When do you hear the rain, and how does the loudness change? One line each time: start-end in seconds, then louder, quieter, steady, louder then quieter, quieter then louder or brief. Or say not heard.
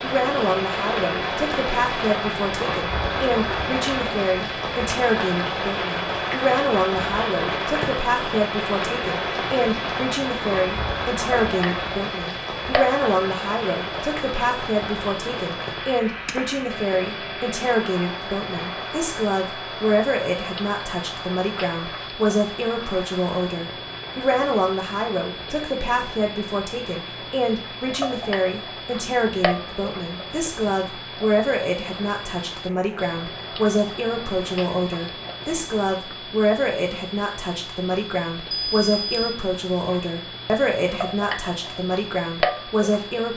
0.0-35.9 quieter.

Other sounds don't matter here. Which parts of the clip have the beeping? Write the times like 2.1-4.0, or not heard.
38.5-39.4.